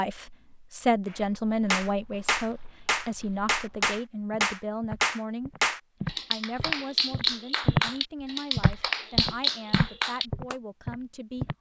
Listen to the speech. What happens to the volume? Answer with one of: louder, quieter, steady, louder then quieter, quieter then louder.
quieter.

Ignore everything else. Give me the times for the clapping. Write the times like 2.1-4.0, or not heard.
1.1-10.6.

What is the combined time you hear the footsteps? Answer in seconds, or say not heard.
10 s.